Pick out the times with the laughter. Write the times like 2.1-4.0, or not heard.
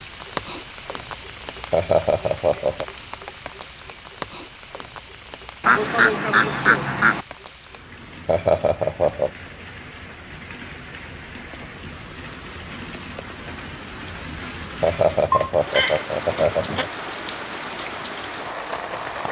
1.7-2.9, 8.2-9.3, 14.8-16.9.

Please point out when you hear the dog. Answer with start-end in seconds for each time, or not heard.
not heard.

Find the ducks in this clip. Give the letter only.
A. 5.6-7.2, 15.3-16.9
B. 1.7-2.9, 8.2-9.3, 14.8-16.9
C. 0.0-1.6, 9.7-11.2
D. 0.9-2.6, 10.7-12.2
A.